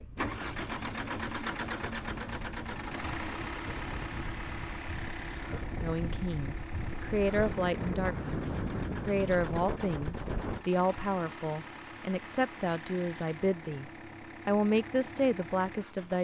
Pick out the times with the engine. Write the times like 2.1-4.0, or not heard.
0.0-16.2.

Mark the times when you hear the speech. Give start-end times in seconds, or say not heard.
5.8-16.2.